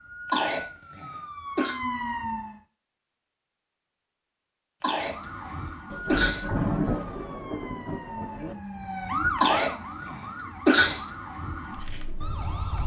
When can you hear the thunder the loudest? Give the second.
7 s.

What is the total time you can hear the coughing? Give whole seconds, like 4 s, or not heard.
5 s.